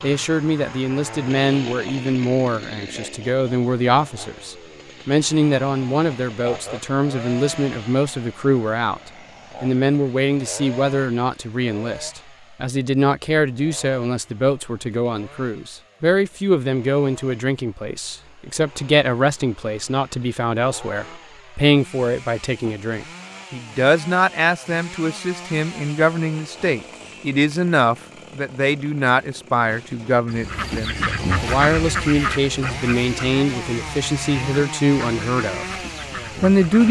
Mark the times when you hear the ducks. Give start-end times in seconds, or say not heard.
30.2-36.8.